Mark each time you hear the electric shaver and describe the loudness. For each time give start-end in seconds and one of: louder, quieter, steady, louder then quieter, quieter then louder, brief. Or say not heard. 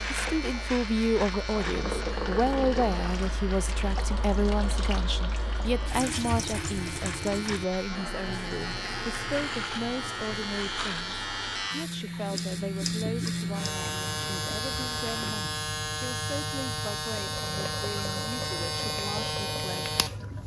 0.0-20.4 louder.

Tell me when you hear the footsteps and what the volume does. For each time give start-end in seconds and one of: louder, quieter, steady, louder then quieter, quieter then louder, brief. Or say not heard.
not heard.